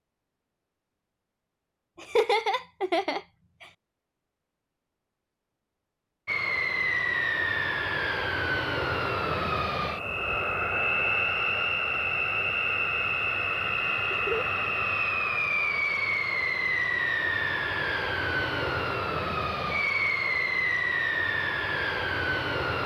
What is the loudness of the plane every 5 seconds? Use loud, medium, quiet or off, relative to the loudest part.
off, loud, loud, loud, loud.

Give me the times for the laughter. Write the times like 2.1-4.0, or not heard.
1.9-3.6, 14.1-14.5.